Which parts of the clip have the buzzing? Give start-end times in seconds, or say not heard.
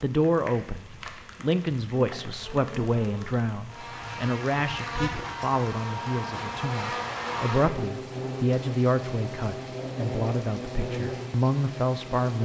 1.9-12.4.